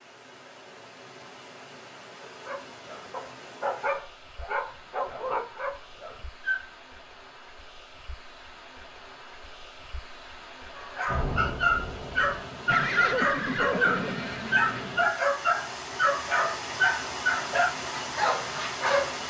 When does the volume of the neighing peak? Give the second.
13 s.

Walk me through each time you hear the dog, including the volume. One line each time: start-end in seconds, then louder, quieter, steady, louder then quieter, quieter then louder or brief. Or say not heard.
2.2-6.7 louder then quieter
10.8-19.2 steady.